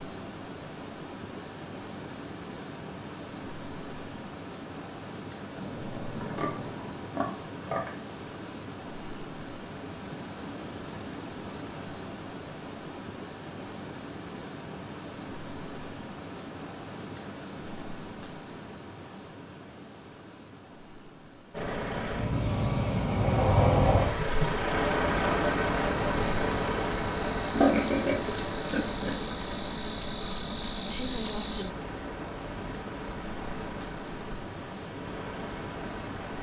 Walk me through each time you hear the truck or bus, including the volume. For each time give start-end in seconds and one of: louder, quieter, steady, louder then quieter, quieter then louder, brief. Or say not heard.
21.5-36.3 quieter.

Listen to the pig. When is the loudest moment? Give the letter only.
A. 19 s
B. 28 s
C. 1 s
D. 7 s
B.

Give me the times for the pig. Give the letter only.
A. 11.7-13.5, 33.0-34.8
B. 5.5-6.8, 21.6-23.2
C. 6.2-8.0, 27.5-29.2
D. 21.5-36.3
C.